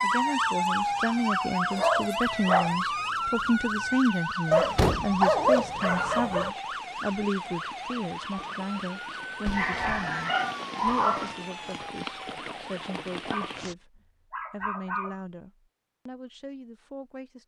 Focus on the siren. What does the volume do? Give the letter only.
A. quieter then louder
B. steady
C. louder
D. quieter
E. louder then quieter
D.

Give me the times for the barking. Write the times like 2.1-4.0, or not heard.
1.7-2.8, 4.5-6.5, 9.4-11.3, 13.2-15.2.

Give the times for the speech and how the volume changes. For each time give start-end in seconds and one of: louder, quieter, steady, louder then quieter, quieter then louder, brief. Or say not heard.
0.0-17.4 quieter.